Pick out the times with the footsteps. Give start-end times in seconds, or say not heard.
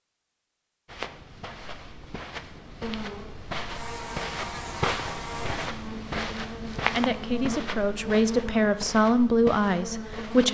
0.8-10.4.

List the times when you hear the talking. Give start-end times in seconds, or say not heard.
6.8-10.4.